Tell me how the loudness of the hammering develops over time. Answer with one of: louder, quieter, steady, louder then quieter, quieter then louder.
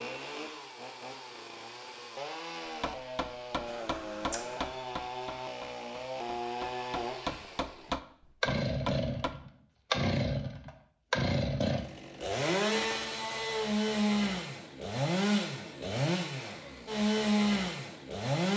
quieter then louder.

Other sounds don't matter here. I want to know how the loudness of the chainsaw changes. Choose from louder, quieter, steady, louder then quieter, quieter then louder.
louder.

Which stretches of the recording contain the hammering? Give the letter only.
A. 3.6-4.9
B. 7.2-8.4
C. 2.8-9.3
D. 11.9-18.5
C.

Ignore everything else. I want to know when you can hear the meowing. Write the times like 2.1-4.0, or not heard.
3.6-4.9.